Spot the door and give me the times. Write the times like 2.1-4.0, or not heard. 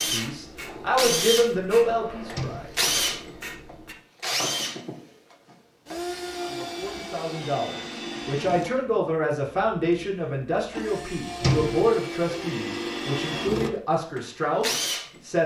2.3-2.9, 11.4-11.9.